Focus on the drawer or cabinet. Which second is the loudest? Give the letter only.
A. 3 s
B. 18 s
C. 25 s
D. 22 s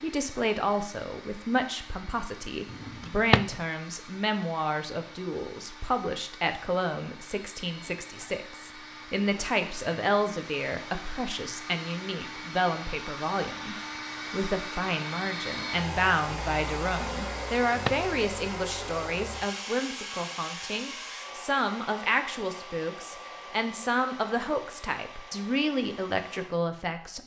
A.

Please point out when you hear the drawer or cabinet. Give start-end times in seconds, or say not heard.
2.7-3.5, 17.2-18.1.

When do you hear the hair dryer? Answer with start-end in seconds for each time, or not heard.
0.0-27.2.